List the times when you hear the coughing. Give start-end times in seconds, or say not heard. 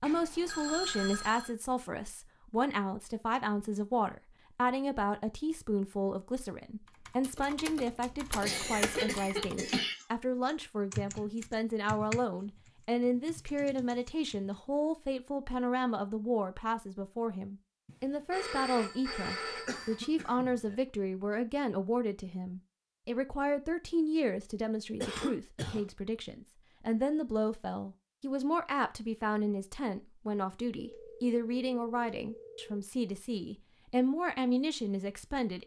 8.4-9.9, 19.6-20.8, 25.0-25.9.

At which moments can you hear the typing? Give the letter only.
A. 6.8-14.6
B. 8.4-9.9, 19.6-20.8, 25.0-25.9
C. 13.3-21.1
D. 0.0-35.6
A.